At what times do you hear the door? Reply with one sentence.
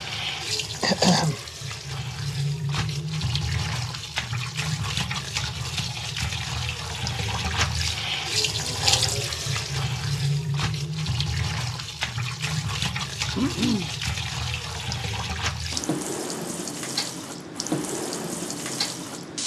The door can't be heard in this clip.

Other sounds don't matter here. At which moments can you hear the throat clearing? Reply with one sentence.
The throat clearing can be heard from 0.8 to 1.4 s and from 13.3 to 13.9 s.